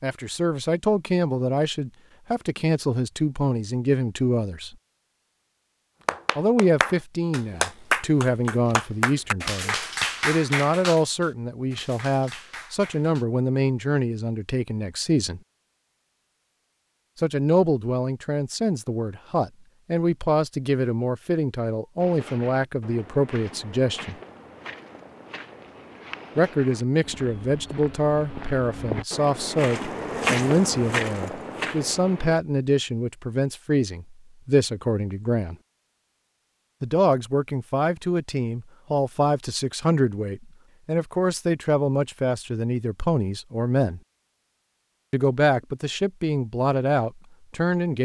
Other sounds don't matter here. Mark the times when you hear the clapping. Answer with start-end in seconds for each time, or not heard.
6.0-13.2.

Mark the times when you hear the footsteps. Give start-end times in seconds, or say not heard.
22.0-32.4.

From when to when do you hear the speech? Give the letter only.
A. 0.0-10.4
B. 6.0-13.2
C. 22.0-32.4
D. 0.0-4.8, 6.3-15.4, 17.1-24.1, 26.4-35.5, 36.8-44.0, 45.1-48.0
D.